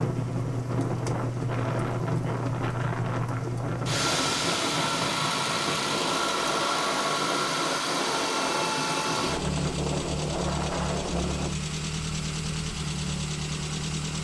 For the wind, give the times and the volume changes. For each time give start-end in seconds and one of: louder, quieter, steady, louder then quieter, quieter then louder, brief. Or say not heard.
0.0-11.5 steady.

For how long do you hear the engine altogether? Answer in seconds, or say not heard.
14 s.